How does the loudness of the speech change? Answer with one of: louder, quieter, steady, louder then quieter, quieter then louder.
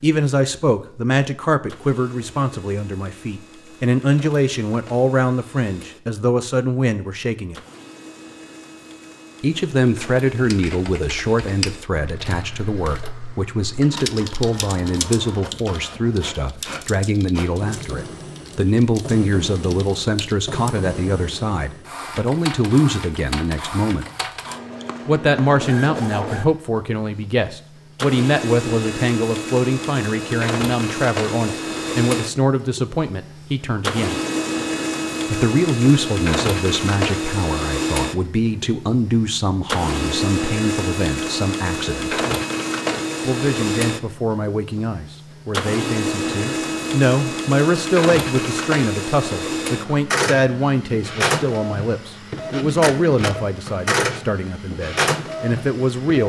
steady.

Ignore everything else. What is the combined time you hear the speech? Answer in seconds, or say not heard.
51 s.